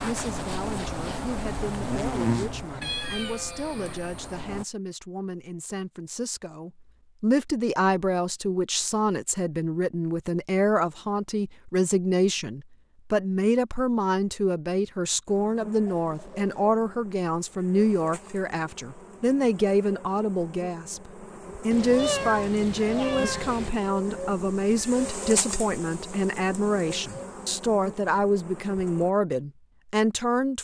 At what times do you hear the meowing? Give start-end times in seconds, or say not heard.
2.8-4.3, 15.8-16.6, 21.7-23.7.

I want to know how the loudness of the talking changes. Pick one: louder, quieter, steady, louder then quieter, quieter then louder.
louder.